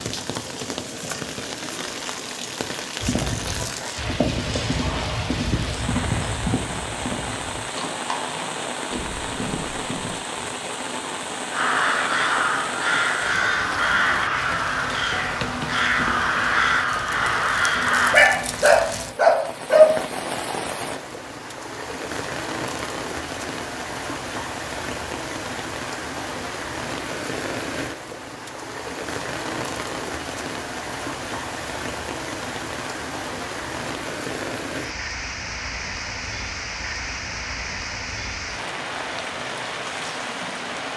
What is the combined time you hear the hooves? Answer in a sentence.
You can hear the hooves for 7 seconds altogether.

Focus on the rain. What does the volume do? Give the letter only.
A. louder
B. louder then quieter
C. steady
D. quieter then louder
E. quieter
C.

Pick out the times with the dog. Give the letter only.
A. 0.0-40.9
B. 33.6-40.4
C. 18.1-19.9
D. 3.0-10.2
C.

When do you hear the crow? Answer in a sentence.
You can hear the crow from 11.5 to 18.2 s.